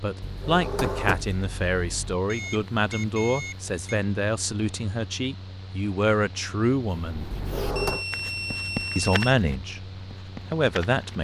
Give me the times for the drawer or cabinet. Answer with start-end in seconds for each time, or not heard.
0.2-2.1, 7.3-8.1.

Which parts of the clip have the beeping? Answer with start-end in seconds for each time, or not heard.
2.2-3.8, 7.8-9.3.